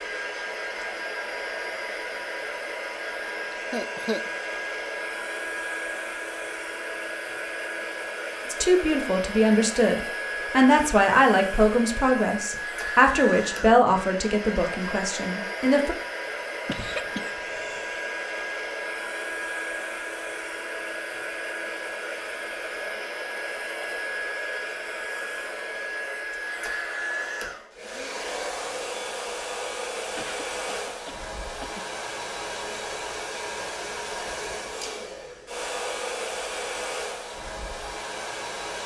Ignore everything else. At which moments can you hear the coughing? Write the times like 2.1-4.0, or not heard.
3.7-4.3, 16.6-18.0, 30.1-31.9.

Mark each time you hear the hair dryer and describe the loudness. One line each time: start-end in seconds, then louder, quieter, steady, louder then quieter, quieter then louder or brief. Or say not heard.
0.0-38.8 steady.